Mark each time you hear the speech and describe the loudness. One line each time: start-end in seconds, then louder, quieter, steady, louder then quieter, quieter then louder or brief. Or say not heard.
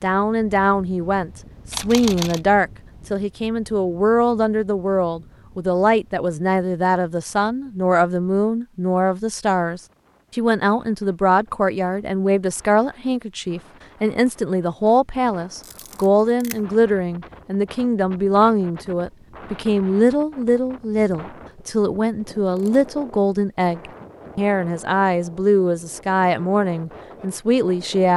0.0-28.1 steady.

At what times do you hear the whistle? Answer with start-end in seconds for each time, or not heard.
not heard.